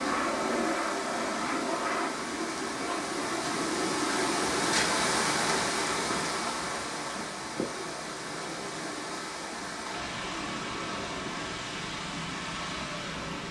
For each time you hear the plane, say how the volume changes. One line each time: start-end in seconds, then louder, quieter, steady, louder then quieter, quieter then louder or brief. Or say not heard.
0.0-13.4 quieter.